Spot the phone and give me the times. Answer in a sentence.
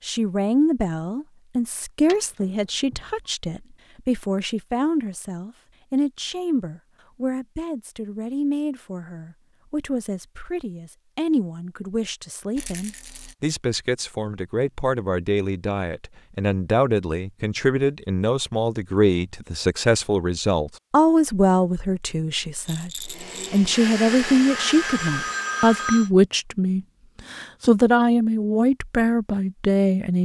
You can hear the phone from 2.4 to 3.3 s and from 24.5 to 26.1 s.